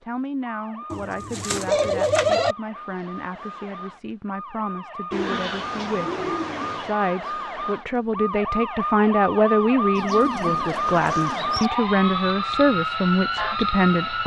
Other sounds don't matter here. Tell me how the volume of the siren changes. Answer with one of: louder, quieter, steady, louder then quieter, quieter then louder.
louder.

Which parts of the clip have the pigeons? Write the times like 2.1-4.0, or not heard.
0.9-2.5, 5.1-7.0, 9.9-11.7.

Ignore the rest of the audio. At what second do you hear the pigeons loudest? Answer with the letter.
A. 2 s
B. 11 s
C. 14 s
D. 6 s
A.